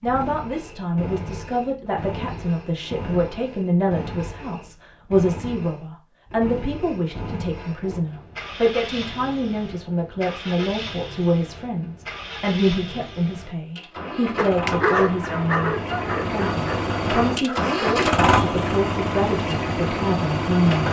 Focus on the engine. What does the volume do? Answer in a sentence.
The loudness of the engine goes up.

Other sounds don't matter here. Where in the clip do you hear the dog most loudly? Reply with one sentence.
The loudest moment of the dog is at 15 seconds.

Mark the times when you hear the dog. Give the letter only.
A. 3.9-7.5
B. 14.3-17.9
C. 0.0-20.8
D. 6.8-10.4
B.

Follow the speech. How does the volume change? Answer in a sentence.
The volume of the speech stays about the same.